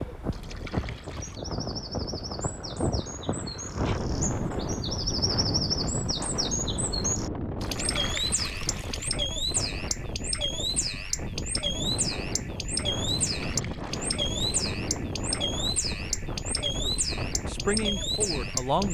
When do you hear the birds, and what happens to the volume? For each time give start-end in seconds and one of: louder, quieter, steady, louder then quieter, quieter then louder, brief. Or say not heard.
0.0-18.8 louder.